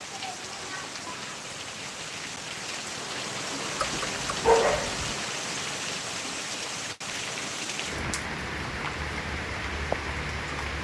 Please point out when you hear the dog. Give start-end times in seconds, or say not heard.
3.8-5.2.